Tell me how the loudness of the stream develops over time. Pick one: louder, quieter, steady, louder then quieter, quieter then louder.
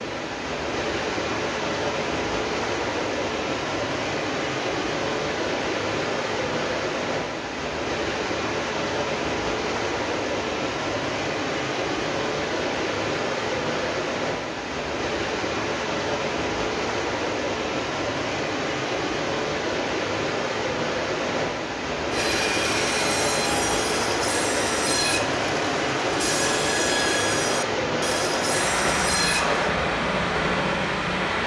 steady.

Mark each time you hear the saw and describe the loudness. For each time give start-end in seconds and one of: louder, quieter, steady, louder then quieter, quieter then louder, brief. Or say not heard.
22.1-29.8 steady.